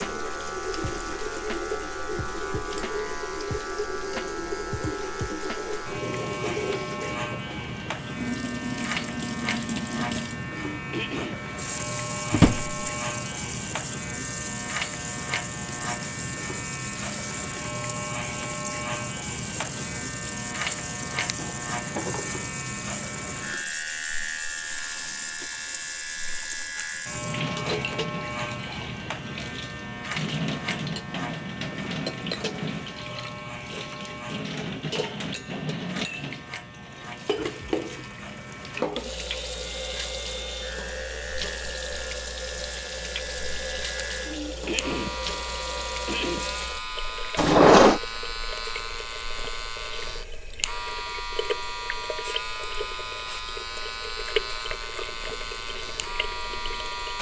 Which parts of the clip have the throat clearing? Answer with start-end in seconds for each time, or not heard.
10.7-11.4, 44.2-45.4, 46.0-46.5.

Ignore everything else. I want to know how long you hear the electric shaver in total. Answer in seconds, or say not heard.
57 s.